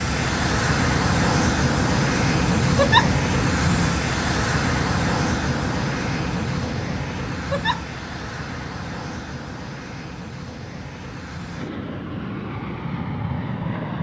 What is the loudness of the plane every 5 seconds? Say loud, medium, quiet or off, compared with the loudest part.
loud, medium, medium.